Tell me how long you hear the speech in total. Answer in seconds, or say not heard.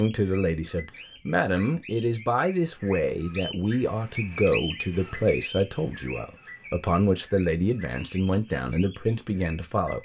10 s.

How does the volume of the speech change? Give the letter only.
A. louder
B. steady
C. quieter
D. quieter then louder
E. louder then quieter
B.